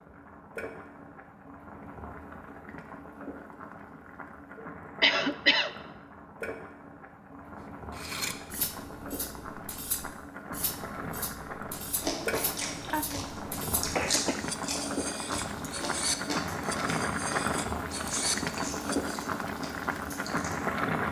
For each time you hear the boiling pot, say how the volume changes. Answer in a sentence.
You can hear the boiling pot from 0.0 to 21.0 s, getting louder.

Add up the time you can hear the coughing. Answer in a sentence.
The coughing can be heard for 3 seconds in total.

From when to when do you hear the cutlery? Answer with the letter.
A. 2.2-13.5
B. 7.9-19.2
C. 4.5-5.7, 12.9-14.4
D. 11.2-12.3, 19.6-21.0
B.